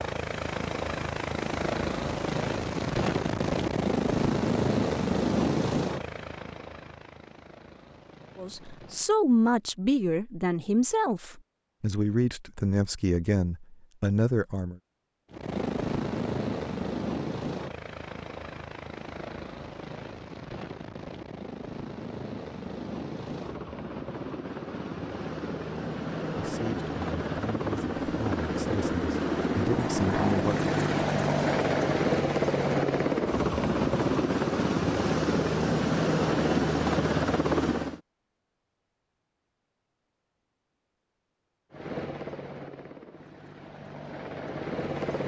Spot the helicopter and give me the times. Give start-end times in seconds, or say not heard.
0.0-9.2, 15.3-38.0, 41.7-45.2.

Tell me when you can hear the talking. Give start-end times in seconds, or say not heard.
8.3-14.8, 26.4-30.7.